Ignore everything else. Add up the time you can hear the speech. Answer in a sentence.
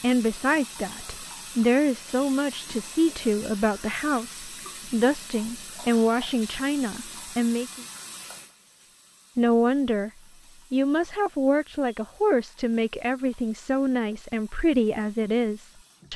You can hear the speech for 14 seconds altogether.